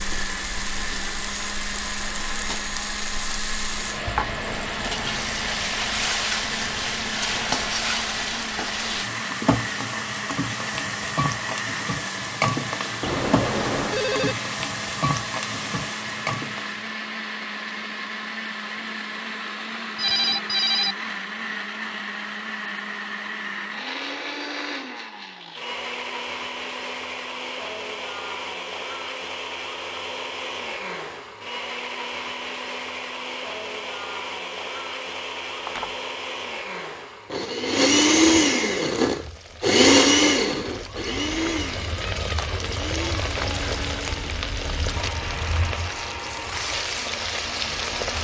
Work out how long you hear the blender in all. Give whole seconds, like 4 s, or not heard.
48 s.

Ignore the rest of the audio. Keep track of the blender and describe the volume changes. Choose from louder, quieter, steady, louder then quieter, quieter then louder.
louder.